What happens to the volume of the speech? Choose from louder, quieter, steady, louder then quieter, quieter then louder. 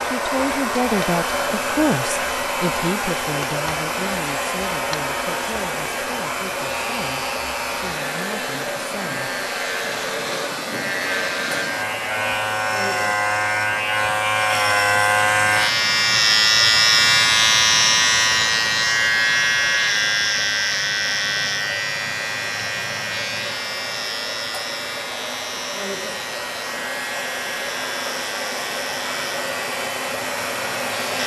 quieter.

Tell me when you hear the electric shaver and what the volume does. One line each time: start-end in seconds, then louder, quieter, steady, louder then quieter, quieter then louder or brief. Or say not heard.
0.0-31.2 louder then quieter.